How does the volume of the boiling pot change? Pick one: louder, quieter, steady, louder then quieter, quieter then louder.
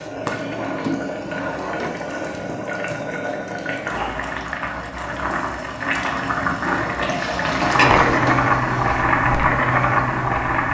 louder.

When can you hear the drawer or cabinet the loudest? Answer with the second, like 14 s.
8 s.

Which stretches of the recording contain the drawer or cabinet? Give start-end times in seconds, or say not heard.
0.3-2.2, 7.7-9.1.